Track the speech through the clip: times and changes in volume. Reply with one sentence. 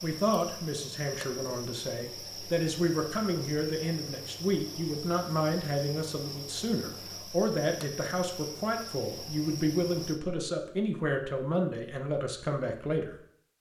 The speech can be heard from 0.0 to 13.2 s, at a steady volume.